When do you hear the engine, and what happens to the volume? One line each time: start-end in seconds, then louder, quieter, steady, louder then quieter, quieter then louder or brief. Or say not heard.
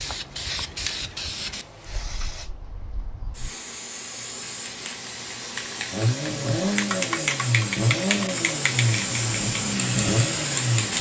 5.9-10.9 steady.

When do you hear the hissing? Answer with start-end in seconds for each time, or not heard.
0.0-10.9.